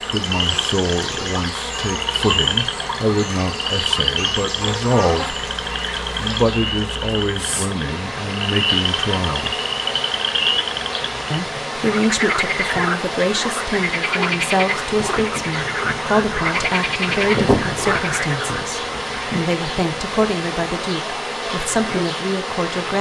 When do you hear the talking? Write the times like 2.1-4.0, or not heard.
0.0-5.4, 6.1-9.6, 11.3-22.9.